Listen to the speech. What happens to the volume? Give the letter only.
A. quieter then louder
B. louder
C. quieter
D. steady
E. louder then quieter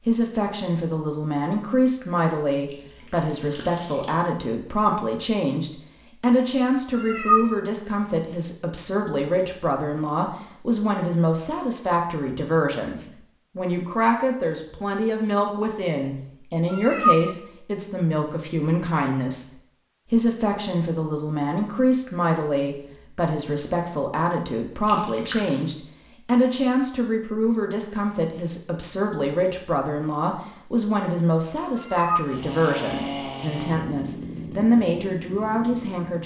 D.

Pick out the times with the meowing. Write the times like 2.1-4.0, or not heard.
6.9-7.5, 16.7-17.3, 31.8-32.4.